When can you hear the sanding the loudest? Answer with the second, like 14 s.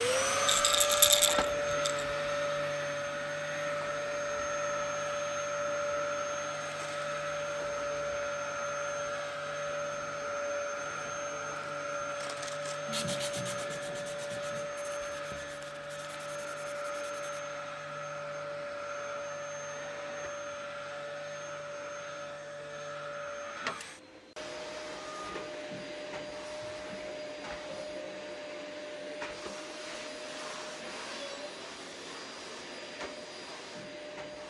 13 s.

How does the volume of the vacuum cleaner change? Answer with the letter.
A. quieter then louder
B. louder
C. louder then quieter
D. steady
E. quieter
E.